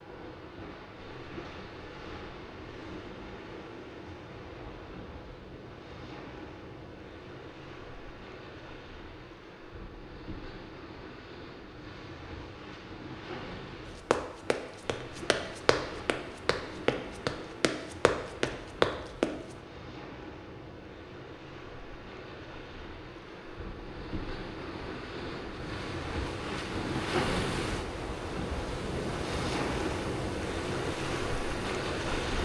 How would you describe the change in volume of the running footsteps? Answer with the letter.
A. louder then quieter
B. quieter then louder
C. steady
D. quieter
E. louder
E.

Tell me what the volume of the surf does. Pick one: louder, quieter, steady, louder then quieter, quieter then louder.
louder.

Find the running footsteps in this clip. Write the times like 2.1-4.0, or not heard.
14.1-19.4.